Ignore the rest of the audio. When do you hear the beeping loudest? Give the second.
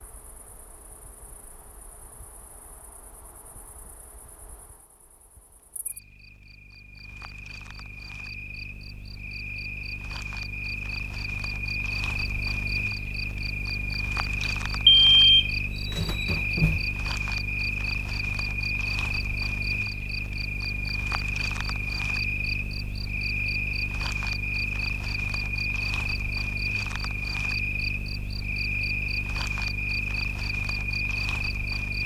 15 s.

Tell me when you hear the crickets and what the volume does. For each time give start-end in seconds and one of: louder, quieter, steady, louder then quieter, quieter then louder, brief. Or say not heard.
0.0-32.0 louder.